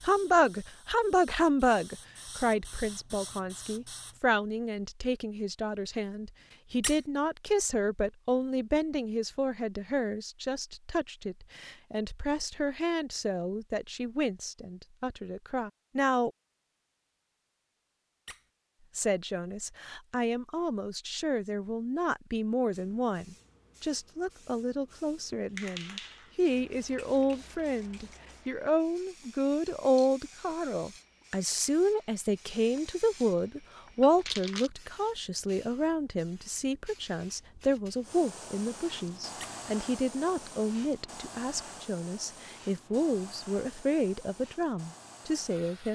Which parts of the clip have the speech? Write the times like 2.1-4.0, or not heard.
0.0-16.3, 18.9-45.9.